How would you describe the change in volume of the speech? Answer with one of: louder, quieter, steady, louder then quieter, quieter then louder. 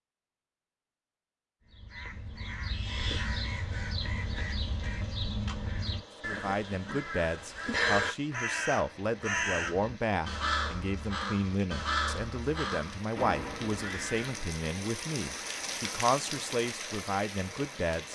steady.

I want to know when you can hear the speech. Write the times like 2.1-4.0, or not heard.
6.2-18.1.